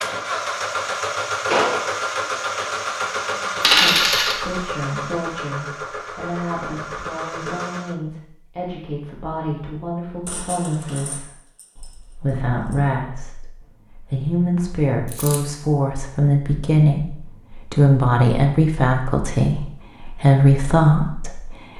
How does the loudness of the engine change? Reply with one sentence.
The loudness of the engine goes down.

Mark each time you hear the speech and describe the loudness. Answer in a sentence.
The speech can be heard from 3.6 to 21.7 s, getting louder.